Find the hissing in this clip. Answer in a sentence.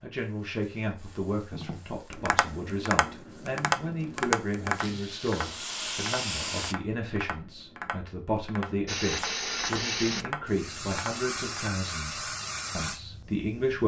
You can hear the hissing from 0.1 to 6.8 s and from 8.8 to 13.8 s.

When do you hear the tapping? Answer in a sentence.
You can hear the tapping from 1.5 to 11.7 s.